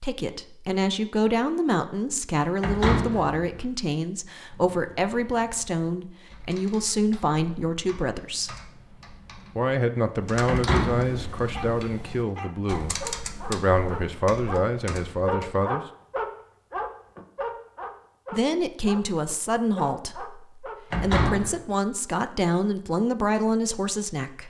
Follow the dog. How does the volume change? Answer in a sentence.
The loudness of the dog goes up, then down.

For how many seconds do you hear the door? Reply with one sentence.
The door can be heard for 3 seconds in total.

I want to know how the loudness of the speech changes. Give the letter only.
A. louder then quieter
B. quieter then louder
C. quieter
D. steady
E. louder
D.